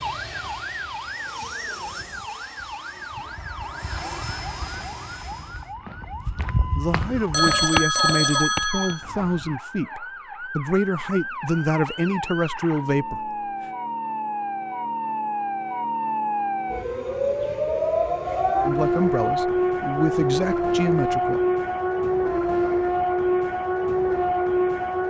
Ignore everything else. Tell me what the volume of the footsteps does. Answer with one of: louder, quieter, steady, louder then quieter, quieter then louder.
louder then quieter.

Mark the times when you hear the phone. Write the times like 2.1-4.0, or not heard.
7.3-9.0.